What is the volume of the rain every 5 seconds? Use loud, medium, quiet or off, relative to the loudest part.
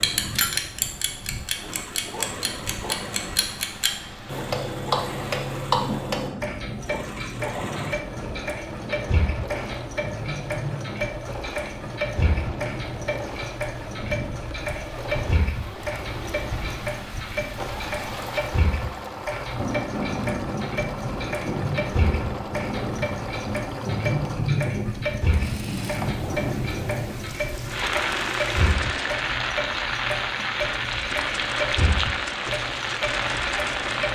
quiet, medium, medium, medium, loud, loud, loud.